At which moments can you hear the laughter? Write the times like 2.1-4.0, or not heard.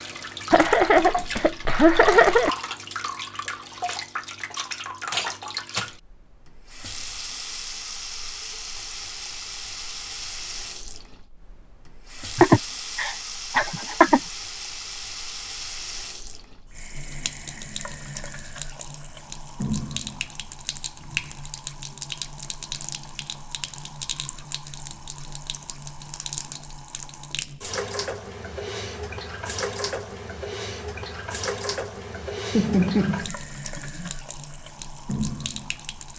0.5-2.5, 12.3-14.2, 32.5-34.1.